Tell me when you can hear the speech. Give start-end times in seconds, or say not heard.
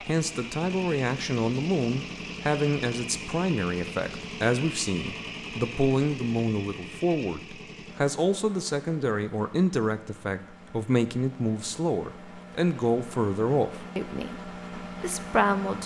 0.1-15.8.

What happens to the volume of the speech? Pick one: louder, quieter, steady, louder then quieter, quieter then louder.
steady.